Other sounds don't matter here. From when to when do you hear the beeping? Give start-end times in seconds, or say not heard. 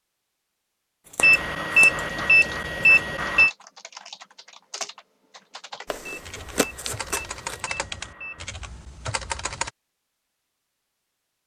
1.2-3.5, 6.0-8.4.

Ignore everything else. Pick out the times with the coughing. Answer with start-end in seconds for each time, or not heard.
not heard.